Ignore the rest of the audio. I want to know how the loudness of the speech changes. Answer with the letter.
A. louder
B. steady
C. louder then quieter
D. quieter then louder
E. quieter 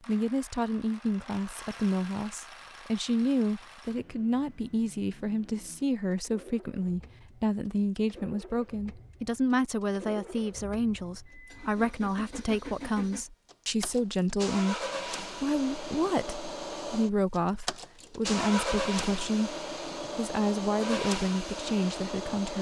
B.